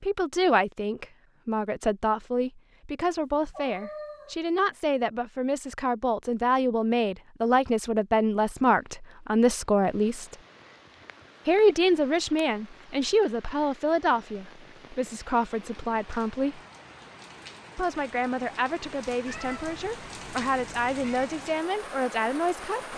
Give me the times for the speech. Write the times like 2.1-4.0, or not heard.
0.0-10.3, 11.4-16.6, 17.8-22.9.